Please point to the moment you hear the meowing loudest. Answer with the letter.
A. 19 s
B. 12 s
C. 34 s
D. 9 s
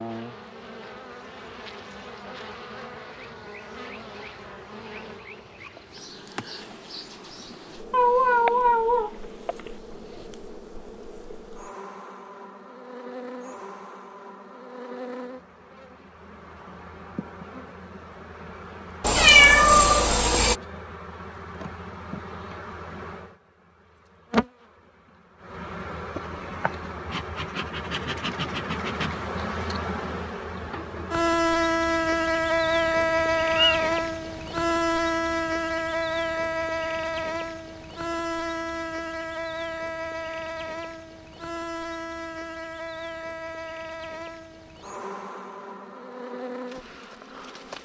A.